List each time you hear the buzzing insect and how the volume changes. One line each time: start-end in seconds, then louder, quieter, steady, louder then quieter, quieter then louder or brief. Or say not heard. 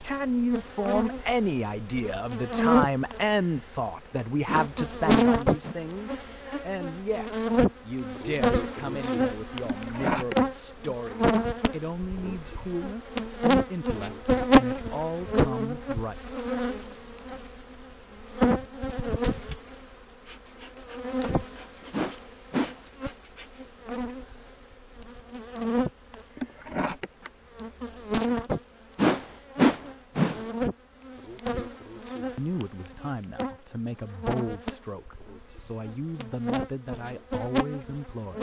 0.0-38.3 quieter.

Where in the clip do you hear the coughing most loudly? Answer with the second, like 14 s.
10 s.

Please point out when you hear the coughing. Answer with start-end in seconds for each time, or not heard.
9.7-10.3, 26.4-27.3.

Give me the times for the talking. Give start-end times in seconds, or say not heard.
0.0-16.1, 32.4-38.3.